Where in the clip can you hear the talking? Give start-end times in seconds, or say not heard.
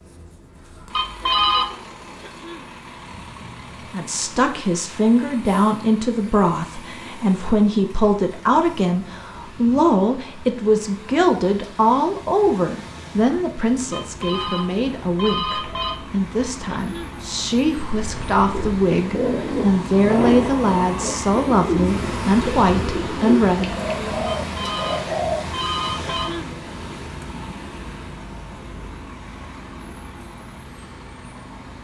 3.9-23.8.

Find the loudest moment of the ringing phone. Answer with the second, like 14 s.
1 s.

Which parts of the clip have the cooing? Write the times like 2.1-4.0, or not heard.
17.9-25.4.